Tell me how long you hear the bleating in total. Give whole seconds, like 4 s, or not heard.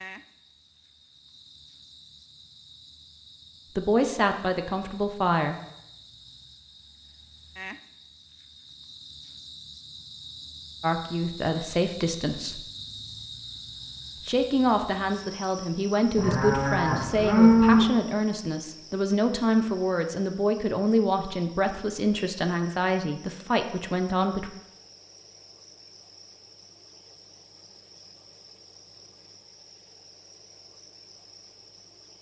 2 s.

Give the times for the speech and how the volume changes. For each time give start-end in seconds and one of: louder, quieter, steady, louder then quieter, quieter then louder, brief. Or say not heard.
3.8-5.5 brief
10.8-12.7 brief
14.2-24.5 steady.